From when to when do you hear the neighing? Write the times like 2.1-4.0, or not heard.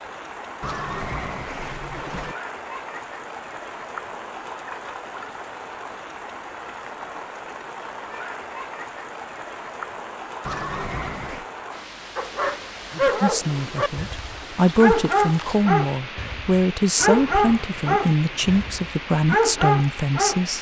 0.6-2.4, 10.4-11.4, 16.9-18.6.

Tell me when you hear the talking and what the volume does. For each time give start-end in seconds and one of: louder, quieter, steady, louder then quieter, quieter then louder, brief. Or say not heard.
13.2-20.5 steady.